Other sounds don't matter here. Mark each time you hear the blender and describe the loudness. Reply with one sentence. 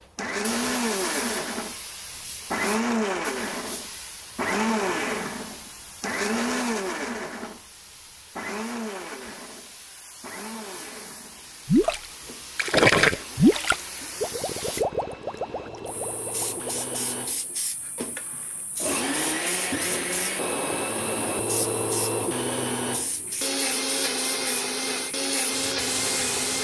You can hear the blender from 0.1 to 26.5 s, getting quieter then louder.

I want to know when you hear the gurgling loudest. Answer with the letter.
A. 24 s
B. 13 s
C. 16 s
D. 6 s
B.